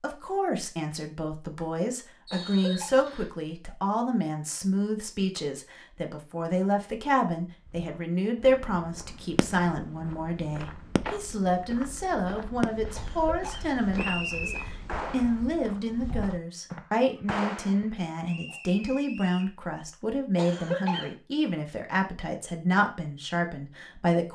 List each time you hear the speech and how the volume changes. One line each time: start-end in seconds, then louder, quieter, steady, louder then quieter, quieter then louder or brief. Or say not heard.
0.0-24.2 steady.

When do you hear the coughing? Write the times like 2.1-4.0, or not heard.
2.3-3.0, 12.9-13.8, 20.4-21.1.